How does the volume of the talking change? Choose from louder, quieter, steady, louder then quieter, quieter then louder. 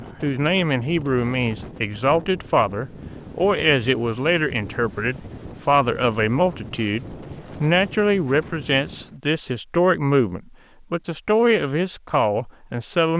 steady.